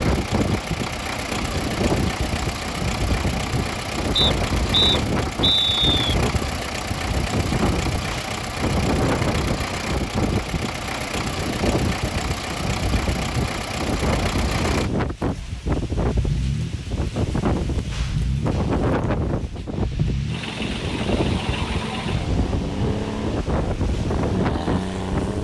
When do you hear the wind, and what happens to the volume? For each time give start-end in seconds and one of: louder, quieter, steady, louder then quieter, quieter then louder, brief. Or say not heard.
0.0-25.3 steady.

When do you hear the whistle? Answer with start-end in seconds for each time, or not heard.
4.2-6.2.